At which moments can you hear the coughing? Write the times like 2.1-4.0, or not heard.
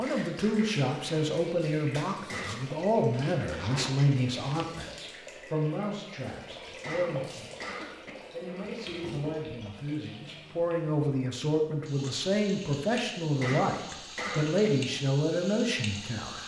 2.2-2.8, 6.8-8.1, 13.4-14.7.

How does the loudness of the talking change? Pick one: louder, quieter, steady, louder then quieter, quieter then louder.
quieter then louder.